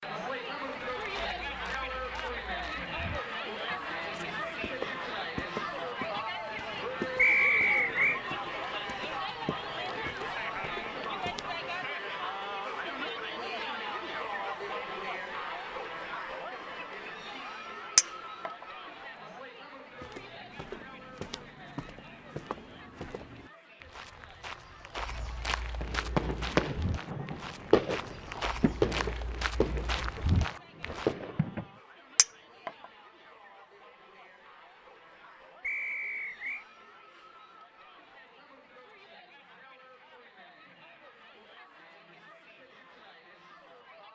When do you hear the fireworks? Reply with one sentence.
The fireworks can be heard from 25.8 to 31.7 s.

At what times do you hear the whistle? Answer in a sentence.
The whistle can be heard from 7.2 to 8.2 s and from 35.6 to 36.6 s.